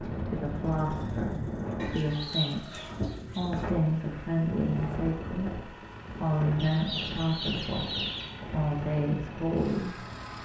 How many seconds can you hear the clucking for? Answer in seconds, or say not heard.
4 s.